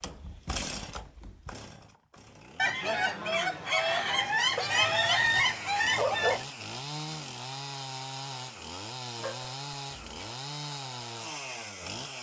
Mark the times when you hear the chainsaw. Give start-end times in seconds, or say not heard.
0.0-12.1.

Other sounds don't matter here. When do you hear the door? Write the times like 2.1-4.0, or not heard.
not heard.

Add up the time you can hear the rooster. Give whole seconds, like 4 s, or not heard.
4 s.